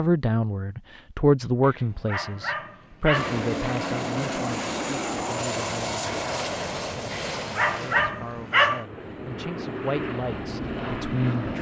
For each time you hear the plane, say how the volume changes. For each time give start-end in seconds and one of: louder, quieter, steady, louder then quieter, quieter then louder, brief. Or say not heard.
3.1-11.5 quieter then louder.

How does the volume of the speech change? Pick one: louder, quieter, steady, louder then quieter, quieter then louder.
quieter then louder.